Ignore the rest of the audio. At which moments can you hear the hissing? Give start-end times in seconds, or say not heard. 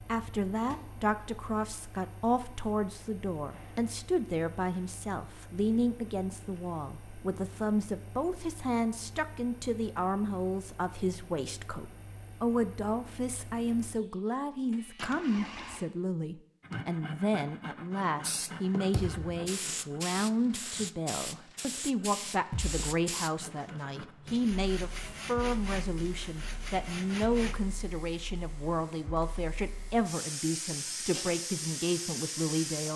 18.1-32.9.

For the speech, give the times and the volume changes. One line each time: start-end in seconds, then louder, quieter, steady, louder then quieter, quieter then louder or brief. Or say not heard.
0.1-32.9 steady.